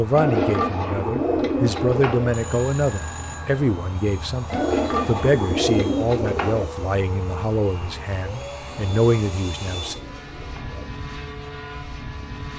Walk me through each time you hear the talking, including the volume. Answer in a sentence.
You can hear the talking from 0.0 to 9.9 s, at a steady volume.